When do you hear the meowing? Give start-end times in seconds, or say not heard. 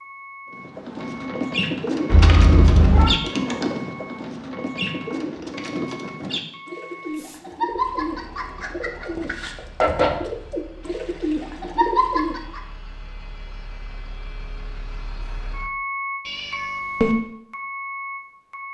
2.1-3.1, 7.5-9.4, 16.2-17.1.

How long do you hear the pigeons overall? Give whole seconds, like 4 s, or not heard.
12 s.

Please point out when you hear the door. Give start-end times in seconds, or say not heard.
not heard.